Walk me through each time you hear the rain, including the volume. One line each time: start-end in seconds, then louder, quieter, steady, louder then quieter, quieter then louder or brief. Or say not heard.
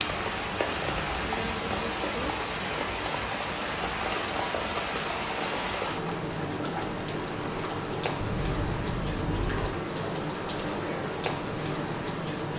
0.0-12.5 steady.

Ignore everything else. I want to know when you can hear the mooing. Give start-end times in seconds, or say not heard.
8.2-9.7.